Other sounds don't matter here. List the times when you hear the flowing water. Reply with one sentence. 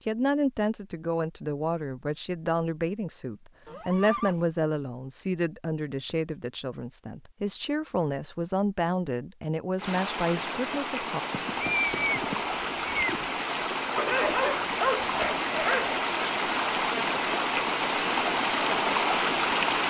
You can hear the flowing water from 9.8 to 19.8 s.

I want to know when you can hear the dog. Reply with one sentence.
The dog can be heard from 13.9 to 16.0 s.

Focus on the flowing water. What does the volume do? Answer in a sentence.
The volume of the flowing water goes up.